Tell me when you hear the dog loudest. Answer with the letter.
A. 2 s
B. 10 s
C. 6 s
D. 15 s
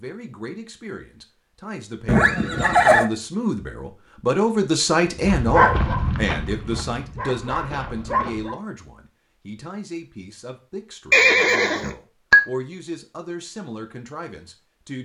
C.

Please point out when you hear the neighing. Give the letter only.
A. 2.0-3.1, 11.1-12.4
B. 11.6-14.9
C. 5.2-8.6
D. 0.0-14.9
A.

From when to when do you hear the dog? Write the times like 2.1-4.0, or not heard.
5.2-8.6.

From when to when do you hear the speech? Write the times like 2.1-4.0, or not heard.
0.0-14.9.